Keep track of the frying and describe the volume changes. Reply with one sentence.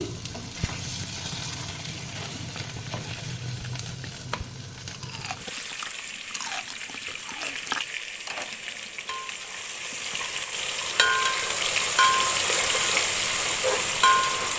The volume of the frying goes up.